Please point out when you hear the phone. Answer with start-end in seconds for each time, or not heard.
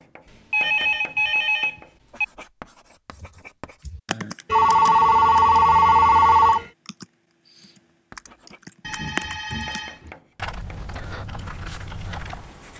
0.5-2.2, 4.5-6.7, 8.8-10.1.